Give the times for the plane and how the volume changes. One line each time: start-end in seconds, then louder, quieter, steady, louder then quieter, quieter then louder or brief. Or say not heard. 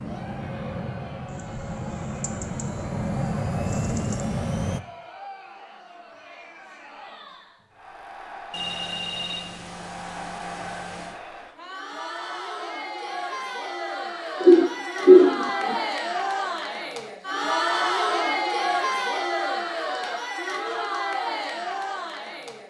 0.0-4.8 louder.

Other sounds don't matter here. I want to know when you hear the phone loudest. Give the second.
9 s.